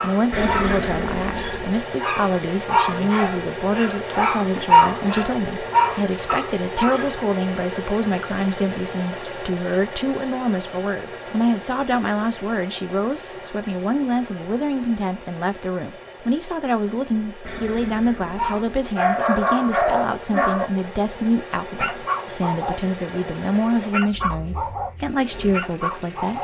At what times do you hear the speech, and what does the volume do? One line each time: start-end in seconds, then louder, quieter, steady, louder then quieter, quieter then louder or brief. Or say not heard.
0.0-26.3 steady.